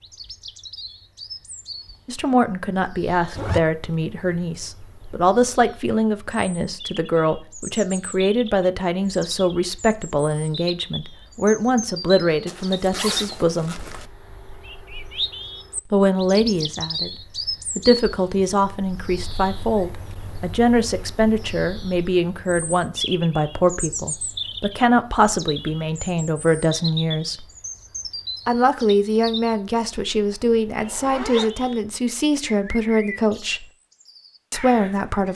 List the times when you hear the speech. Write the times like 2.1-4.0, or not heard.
2.0-13.8, 15.8-17.1, 17.8-27.4, 28.4-33.6, 34.5-35.3.